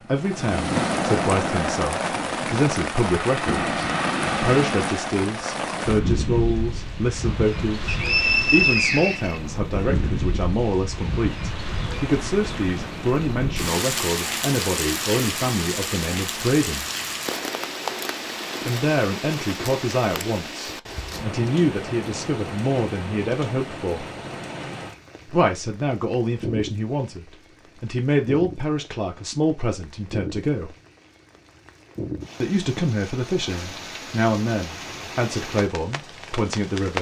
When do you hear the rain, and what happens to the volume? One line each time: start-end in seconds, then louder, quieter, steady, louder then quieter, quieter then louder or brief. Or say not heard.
0.1-36.9 quieter.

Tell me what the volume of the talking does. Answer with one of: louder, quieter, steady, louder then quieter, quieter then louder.
steady.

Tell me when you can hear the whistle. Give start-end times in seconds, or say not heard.
7.8-9.4.